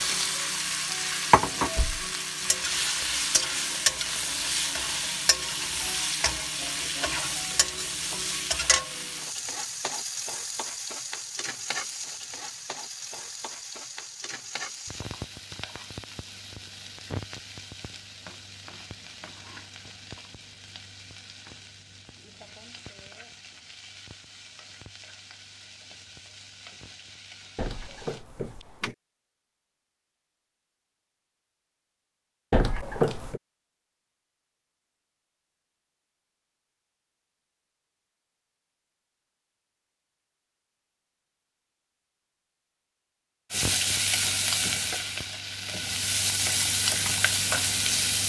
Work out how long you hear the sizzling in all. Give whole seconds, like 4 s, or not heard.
33 s.